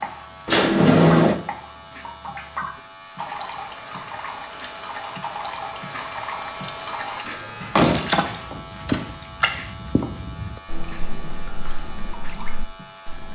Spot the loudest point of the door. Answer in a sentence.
The volume of the door peaks at 1 second.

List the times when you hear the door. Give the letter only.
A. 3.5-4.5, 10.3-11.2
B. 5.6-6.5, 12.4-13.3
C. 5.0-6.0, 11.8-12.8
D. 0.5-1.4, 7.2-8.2
D.